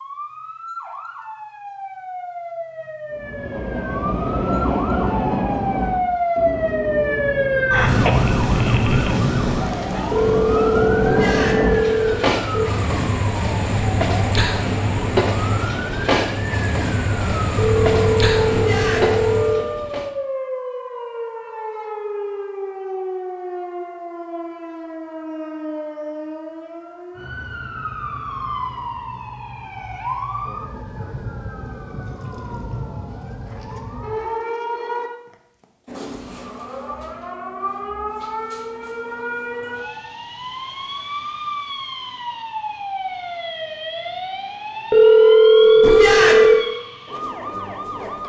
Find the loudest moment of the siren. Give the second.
8 s.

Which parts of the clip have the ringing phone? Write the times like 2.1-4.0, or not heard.
10.1-12.7, 17.6-19.6, 44.9-46.6.